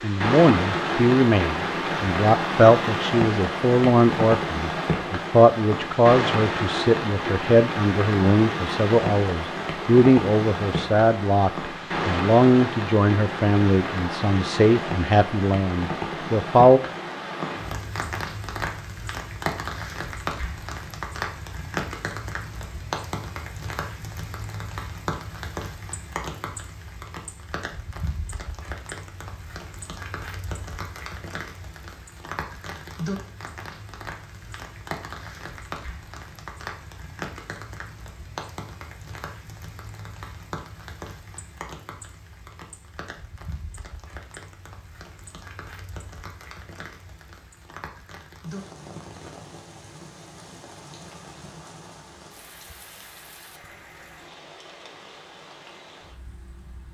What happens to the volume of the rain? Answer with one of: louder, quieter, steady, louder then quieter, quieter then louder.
quieter.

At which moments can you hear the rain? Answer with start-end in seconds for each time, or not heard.
0.0-56.8.